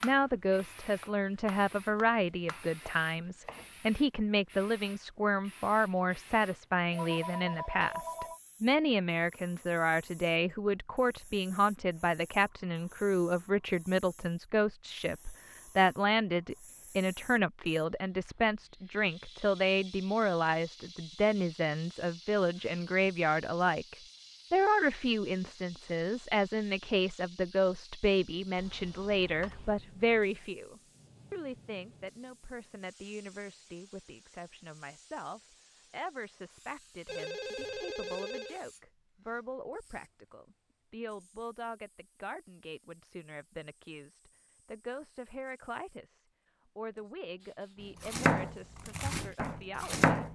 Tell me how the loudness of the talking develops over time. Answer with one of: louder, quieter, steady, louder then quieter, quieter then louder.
quieter.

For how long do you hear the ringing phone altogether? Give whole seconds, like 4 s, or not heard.
4 s.